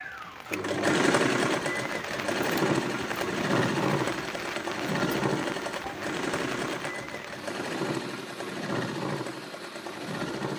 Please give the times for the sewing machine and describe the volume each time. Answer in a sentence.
You can hear the sewing machine from 0.0 to 10.5 s, getting quieter.